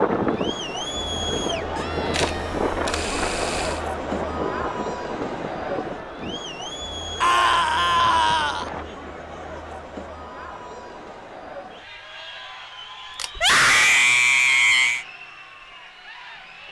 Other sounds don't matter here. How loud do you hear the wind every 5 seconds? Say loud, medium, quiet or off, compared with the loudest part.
loud, medium, off, off.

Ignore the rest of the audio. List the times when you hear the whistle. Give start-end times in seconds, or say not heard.
not heard.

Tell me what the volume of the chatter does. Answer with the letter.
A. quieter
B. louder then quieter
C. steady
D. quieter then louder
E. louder
A.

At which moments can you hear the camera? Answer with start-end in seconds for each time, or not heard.
2.1-3.9, 13.1-13.5.